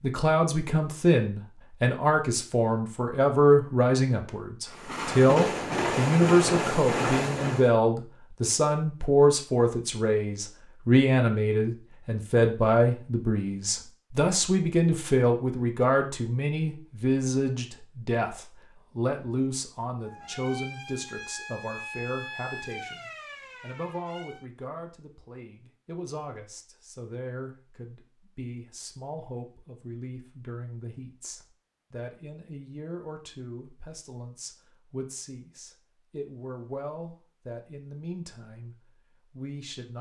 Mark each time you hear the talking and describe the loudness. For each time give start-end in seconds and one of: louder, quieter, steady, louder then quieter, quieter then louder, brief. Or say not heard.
0.0-39.9 quieter.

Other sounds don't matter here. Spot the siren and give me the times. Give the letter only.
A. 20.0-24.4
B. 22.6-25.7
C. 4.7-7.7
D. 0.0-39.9
A.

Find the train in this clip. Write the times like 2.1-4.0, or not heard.
4.7-7.7.